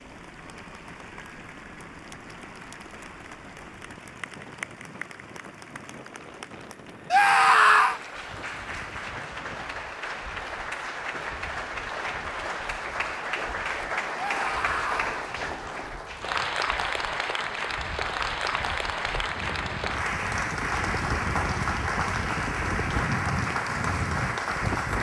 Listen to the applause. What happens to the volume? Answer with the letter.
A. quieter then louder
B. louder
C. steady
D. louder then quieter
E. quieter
B.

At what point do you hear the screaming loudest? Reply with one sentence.
The loudest moment of the screaming is at 8 seconds.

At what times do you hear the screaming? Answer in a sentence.
You can hear the screaming from 7.1 to 8.0 s and from 14.2 to 15.2 s.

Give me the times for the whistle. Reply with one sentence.
You can't hear the whistle here.